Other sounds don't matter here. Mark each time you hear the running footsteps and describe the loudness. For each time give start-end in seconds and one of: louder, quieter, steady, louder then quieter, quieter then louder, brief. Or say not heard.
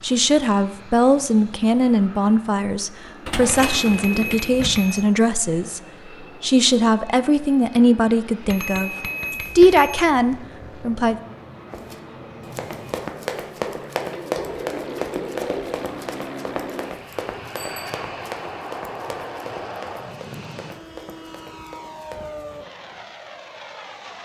11.7-22.4 quieter.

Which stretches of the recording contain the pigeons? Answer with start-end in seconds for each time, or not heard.
3.2-4.8, 14.1-15.8.